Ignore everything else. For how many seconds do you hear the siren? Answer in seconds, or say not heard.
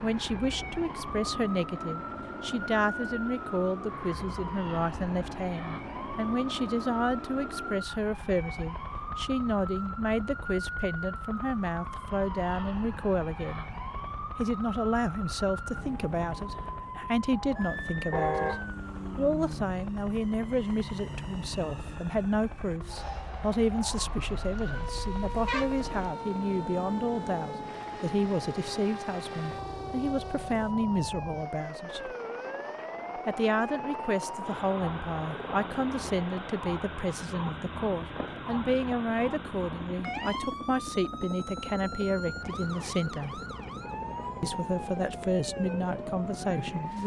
47 s.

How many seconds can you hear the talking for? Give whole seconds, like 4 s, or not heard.
44 s.